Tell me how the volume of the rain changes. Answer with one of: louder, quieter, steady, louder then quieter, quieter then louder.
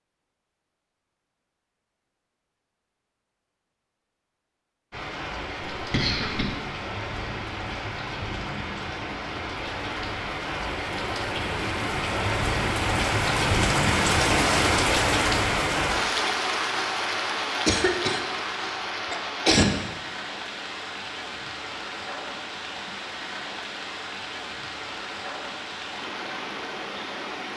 louder then quieter.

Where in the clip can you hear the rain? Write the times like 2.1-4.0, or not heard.
4.9-27.5.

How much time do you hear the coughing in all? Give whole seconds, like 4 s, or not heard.
3 s.